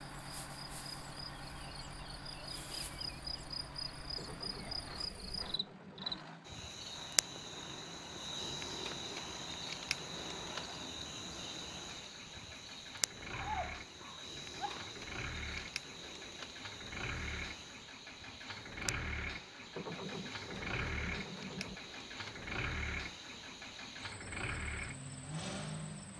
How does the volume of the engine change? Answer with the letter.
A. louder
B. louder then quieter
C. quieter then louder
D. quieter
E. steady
A.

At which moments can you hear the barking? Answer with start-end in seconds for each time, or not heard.
13.3-14.9.